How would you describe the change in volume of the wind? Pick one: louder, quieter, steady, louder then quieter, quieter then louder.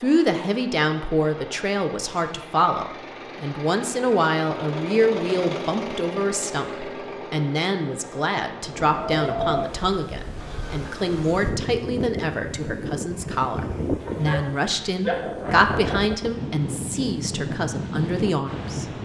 steady.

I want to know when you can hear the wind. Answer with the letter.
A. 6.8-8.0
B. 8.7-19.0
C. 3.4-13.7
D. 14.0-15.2
B.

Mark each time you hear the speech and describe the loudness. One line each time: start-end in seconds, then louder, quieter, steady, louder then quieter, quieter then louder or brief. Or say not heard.
0.0-19.0 steady.